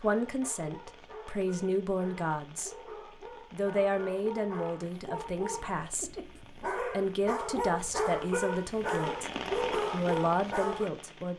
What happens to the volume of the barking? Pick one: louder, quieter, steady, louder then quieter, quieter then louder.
louder.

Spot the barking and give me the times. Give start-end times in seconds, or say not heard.
0.0-10.9.